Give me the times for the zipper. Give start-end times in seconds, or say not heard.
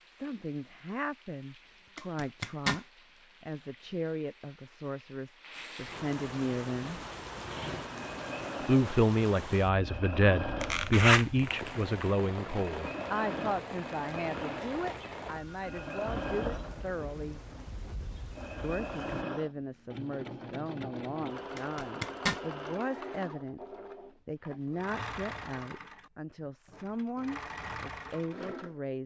1.9-2.8, 10.6-12.1, 21.6-22.4.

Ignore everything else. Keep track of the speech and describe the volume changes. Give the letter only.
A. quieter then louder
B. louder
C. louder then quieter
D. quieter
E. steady
C.